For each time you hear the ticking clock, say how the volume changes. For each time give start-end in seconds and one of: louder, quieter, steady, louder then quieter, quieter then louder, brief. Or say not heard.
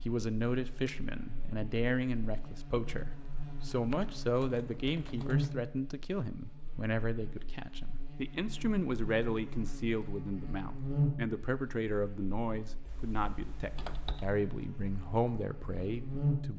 not heard.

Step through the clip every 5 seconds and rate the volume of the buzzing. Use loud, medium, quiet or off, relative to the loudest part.
quiet, medium, loud, loud.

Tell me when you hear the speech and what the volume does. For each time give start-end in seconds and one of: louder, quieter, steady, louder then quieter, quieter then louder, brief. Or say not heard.
0.1-16.5 steady.